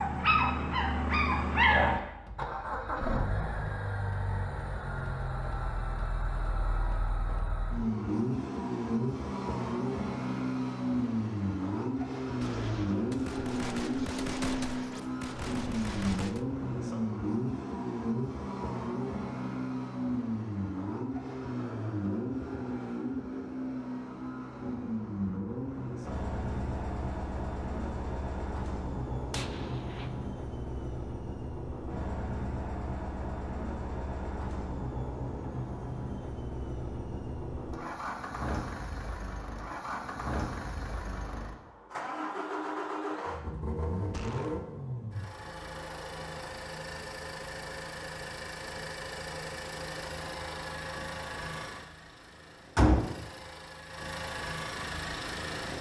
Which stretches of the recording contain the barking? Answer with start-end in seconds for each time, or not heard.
0.0-2.0.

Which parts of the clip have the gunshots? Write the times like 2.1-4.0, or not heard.
12.4-16.4, 29.3-30.3, 44.1-44.6.